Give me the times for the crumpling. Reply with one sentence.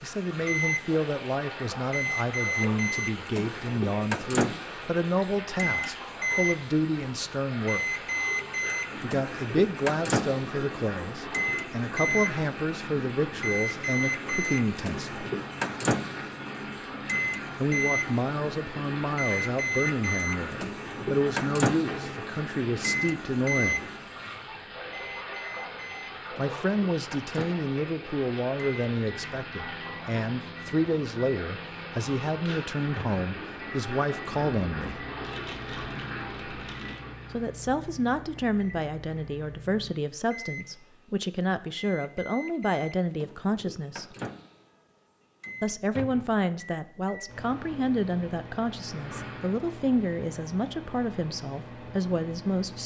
You can hear the crumpling from 35.2 to 37.0 s.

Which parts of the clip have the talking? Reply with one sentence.
The talking can be heard from 0.0 to 8.0 s, from 9.0 to 15.2 s, from 17.6 to 23.8 s, from 26.4 to 35.0 s, from 37.3 to 44.1 s and from 45.6 to 52.8 s.